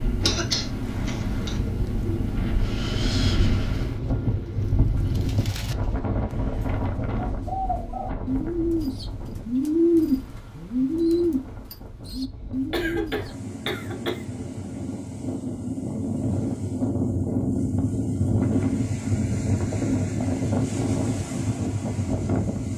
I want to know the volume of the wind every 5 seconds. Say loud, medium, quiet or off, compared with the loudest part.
loud, medium, quiet, loud, loud.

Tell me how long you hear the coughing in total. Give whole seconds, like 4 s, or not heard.
3 s.